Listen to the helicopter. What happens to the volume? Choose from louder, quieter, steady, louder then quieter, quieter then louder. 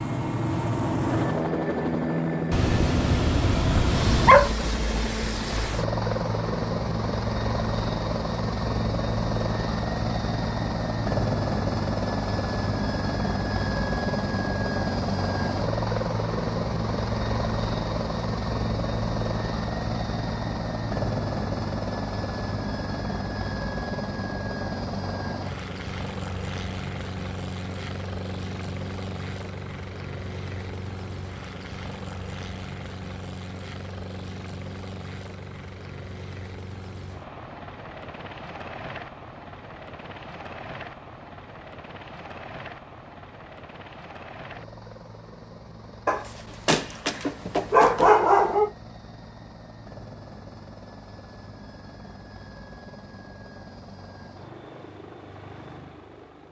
quieter.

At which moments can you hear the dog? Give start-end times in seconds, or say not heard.
2.5-4.5, 46.0-48.7.